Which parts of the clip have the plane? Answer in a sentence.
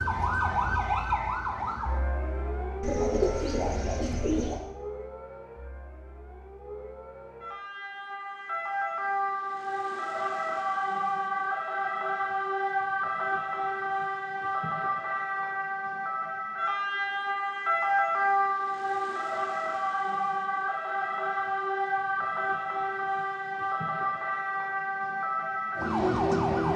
You can't hear the plane here.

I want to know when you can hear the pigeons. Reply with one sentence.
The pigeons can be heard from 2.8 to 4.6 s.